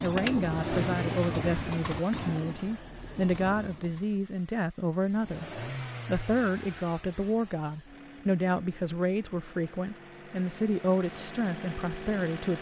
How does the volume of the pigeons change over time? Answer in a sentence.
The volume of the pigeons goes down.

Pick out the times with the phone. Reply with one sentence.
The phone can be heard from 0.0 to 0.4 s.